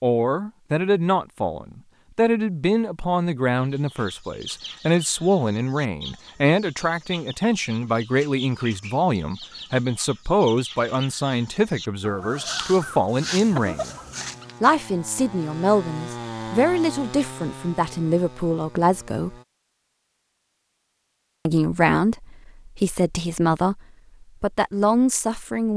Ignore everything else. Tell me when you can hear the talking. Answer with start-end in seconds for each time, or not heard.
0.0-13.9, 14.6-19.4, 21.4-25.7.